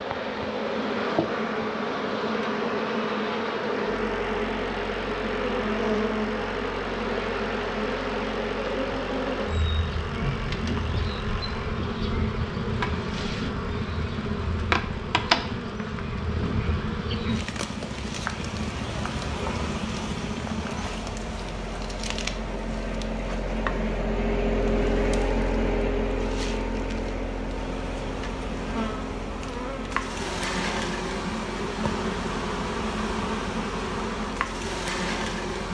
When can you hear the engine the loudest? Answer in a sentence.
The loudest moment of the engine is at 25 seconds.